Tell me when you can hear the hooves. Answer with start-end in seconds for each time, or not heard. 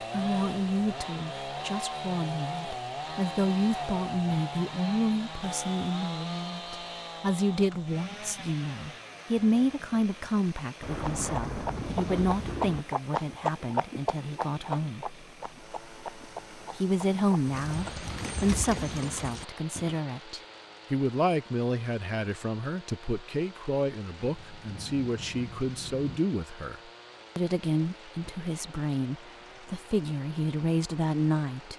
11.0-20.1.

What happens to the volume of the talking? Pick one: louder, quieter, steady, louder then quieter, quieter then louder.
steady.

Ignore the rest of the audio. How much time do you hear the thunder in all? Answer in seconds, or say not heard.
4 s.